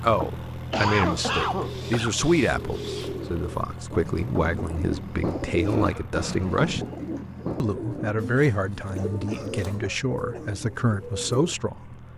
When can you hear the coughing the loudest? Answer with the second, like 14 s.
1 s.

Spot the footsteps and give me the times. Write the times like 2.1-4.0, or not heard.
not heard.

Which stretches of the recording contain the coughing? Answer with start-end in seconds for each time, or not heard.
0.1-2.1, 5.6-6.5, 8.9-10.6.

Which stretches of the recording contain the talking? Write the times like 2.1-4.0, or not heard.
0.0-6.8, 7.5-12.0.